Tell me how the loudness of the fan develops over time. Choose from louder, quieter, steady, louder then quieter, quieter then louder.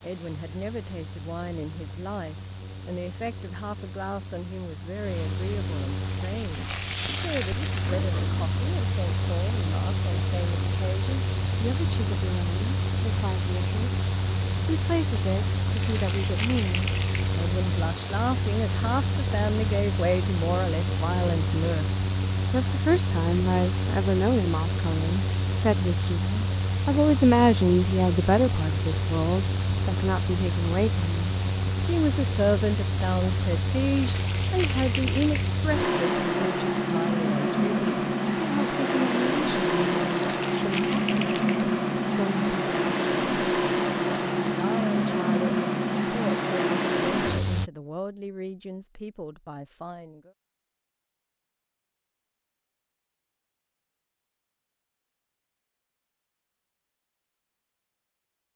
louder.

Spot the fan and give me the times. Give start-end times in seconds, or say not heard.
0.0-47.7.